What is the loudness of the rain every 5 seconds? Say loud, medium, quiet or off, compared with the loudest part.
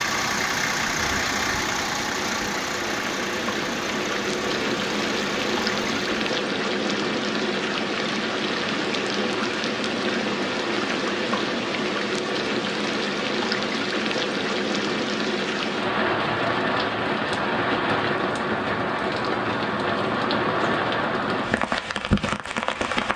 medium, loud, loud, loud, loud.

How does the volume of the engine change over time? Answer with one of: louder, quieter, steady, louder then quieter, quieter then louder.
quieter.